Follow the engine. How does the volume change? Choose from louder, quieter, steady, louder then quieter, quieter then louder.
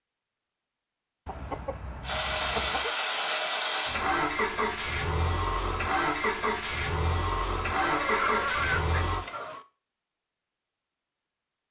steady.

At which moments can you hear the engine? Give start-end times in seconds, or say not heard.
2.0-9.2.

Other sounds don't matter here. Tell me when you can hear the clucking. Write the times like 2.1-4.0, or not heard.
1.2-2.9, 7.8-9.7.